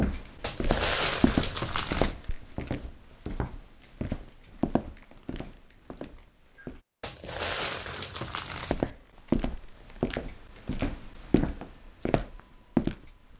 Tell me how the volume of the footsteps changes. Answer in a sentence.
The loudness of the footsteps goes down, then up.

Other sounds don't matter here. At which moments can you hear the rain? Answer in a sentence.
The rain can't be heard in this clip.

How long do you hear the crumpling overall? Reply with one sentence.
The crumpling can be heard for 4 seconds in total.